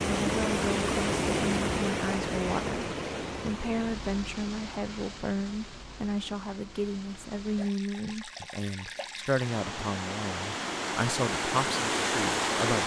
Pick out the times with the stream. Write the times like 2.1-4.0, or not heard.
0.0-12.8.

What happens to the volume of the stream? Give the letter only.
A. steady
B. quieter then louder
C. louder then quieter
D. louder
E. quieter
B.